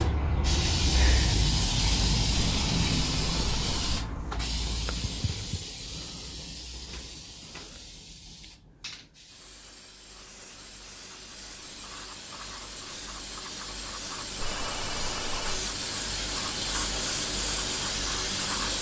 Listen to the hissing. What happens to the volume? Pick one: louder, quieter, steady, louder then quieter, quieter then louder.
quieter then louder.